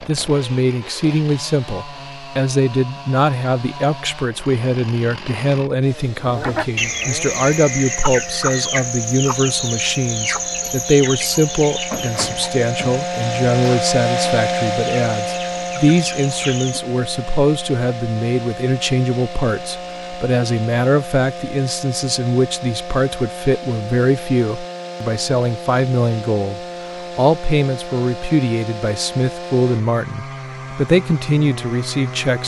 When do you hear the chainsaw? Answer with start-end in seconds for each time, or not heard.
0.0-32.4.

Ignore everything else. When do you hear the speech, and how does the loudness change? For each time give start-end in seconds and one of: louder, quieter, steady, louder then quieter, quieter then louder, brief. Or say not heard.
0.0-32.4 steady.